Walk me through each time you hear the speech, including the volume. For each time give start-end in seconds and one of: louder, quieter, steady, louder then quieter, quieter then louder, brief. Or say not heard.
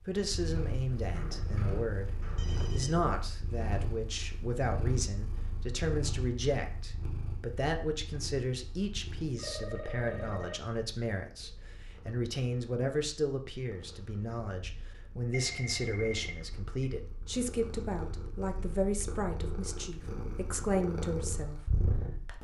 0.1-22.3 steady.